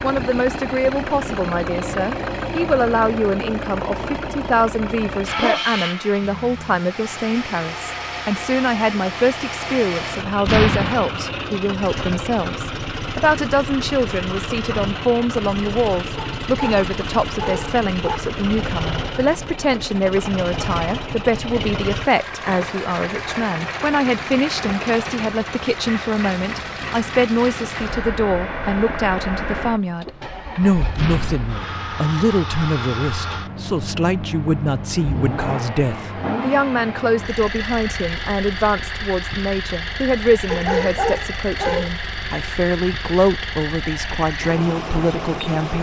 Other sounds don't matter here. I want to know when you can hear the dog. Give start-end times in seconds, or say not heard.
5.2-6.8, 16.1-18.2, 40.5-42.0.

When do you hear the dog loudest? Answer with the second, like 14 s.
41 s.